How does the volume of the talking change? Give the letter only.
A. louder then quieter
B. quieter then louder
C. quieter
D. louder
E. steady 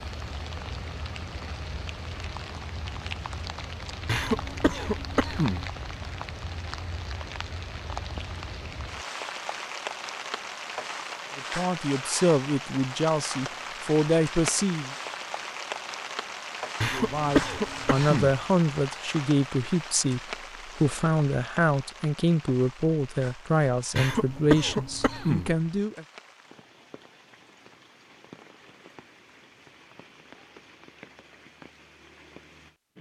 E.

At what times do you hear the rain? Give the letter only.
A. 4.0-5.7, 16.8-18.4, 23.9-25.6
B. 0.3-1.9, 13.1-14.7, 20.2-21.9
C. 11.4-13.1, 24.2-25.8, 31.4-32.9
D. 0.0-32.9
D.